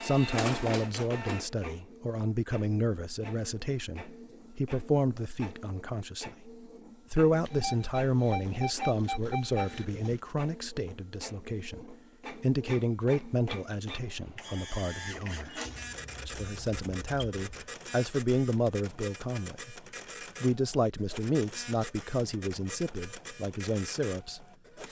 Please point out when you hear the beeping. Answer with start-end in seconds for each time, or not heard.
7.4-10.2, 15.7-17.4.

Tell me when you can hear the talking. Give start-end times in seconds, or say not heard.
0.0-6.5, 7.1-15.6, 16.2-19.8, 20.4-24.4.